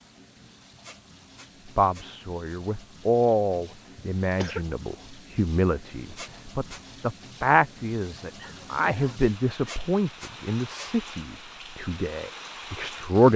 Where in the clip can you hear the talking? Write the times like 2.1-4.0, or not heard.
1.8-13.3.